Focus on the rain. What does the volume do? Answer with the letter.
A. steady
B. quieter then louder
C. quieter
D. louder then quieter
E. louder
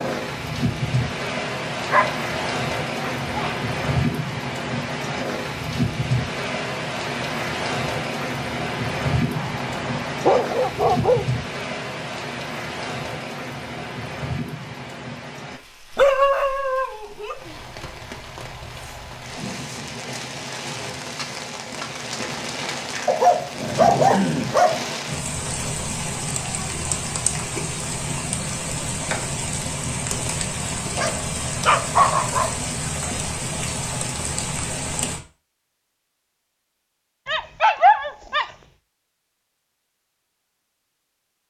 B.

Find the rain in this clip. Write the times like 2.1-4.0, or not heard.
0.0-35.2.